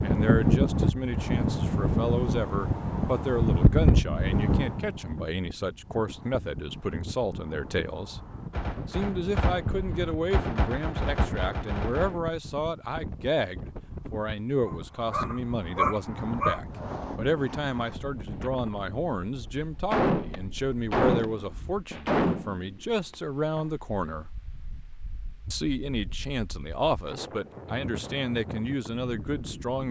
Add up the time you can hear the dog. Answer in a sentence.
The dog can be heard for 2 seconds in total.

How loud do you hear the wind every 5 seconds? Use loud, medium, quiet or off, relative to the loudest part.
loud, quiet, quiet, quiet, quiet, quiet.